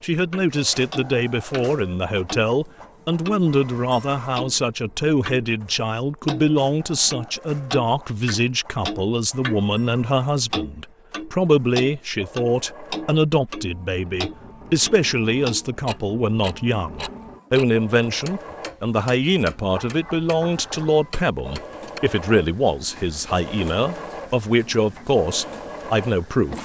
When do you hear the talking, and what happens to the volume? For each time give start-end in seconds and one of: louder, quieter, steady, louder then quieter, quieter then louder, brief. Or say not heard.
0.0-26.5 steady.